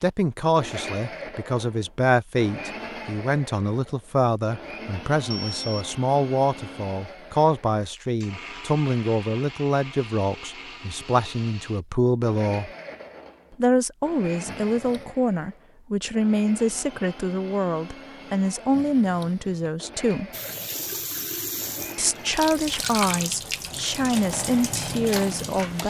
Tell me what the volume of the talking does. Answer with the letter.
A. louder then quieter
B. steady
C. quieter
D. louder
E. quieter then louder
B.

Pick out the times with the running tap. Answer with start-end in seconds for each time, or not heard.
20.3-25.8.